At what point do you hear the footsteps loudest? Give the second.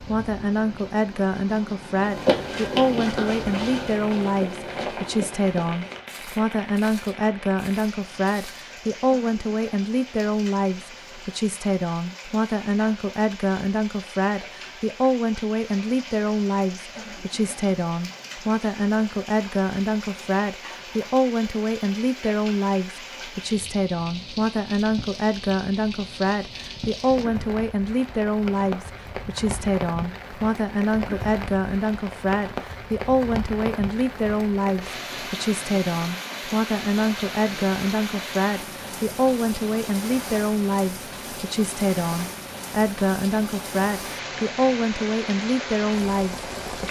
2 s.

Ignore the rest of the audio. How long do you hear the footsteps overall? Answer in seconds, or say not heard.
7 s.